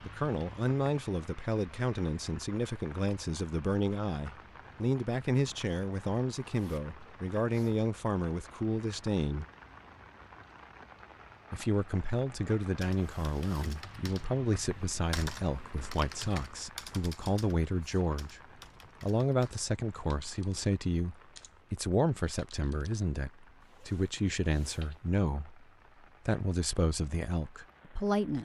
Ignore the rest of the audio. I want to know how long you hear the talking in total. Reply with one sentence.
The talking can be heard for 25 seconds in total.